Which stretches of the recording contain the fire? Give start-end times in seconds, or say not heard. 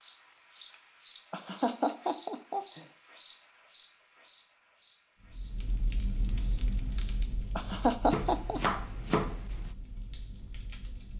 5.2-11.1.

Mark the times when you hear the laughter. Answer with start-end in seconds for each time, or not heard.
1.3-2.9, 7.5-8.8.